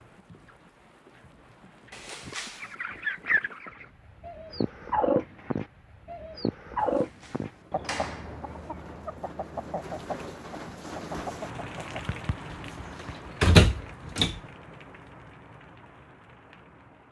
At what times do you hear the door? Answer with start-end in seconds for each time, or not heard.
1.9-2.8, 6.8-8.4, 12.5-14.4.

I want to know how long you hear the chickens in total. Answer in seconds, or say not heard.
10 s.